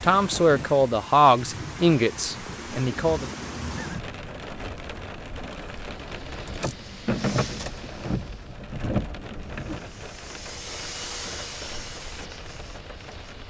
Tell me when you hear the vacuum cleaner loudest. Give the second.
11 s.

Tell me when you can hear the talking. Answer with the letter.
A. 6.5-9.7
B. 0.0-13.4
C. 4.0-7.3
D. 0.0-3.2
D.